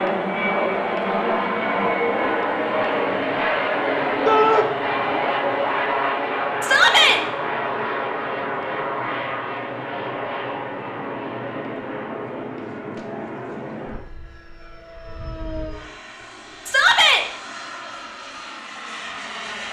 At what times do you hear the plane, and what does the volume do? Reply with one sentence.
You can hear the plane from 0.0 to 19.6 s, getting quieter.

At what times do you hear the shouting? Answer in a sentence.
You can hear the shouting from 4.2 to 4.7 s, from 6.6 to 7.2 s and from 16.6 to 17.2 s.